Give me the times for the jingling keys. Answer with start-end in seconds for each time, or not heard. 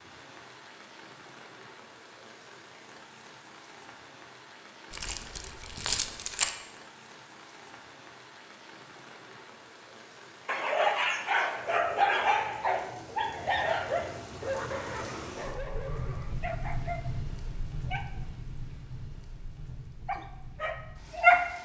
4.9-6.5.